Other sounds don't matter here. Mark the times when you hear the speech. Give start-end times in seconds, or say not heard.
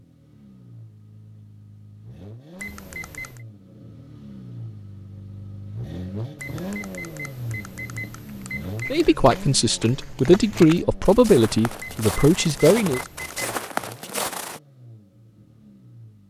8.9-13.0.